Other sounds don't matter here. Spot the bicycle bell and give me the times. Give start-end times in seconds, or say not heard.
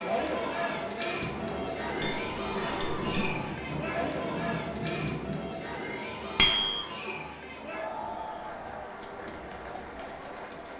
2.0-3.4, 6.3-6.8.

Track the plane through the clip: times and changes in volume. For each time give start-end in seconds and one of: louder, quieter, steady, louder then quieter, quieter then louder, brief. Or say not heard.
not heard.